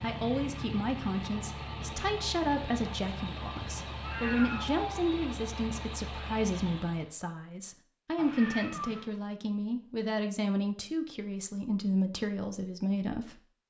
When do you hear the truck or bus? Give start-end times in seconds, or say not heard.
0.0-7.2.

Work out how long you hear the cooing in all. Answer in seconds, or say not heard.
not heard.